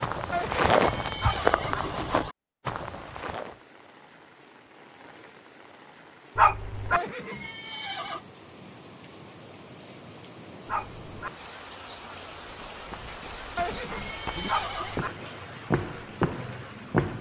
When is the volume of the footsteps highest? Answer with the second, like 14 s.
1 s.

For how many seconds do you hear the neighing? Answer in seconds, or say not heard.
5 s.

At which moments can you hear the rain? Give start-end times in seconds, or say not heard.
2.6-17.1.